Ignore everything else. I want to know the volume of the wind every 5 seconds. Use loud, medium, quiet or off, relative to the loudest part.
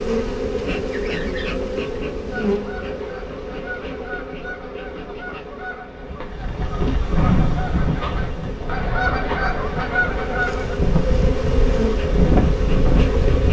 off, loud, loud.